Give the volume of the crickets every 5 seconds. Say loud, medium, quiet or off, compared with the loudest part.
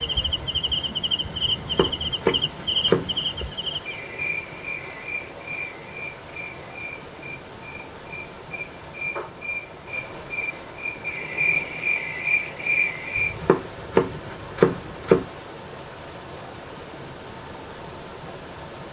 loud, medium, loud, off.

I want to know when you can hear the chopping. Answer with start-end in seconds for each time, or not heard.
1.5-3.5, 13.2-15.2.